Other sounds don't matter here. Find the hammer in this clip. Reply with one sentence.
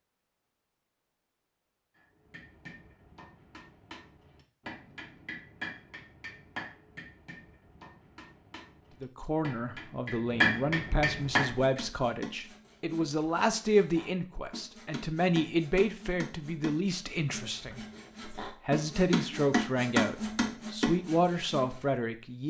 The hammer can be heard from 2.0 to 11.8 s.